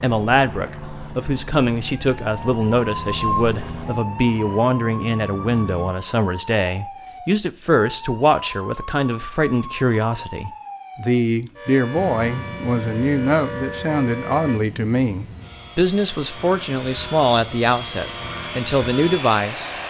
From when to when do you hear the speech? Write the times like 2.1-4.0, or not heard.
0.0-19.7.